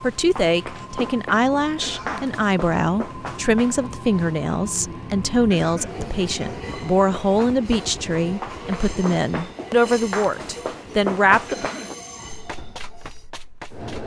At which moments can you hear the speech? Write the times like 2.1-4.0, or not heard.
0.0-11.7.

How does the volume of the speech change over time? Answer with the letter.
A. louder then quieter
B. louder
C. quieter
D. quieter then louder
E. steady
E.